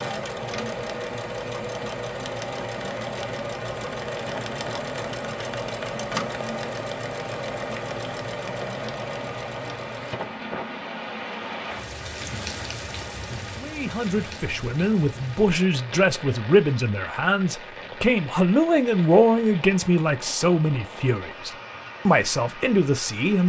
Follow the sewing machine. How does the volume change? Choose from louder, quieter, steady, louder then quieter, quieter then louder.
steady.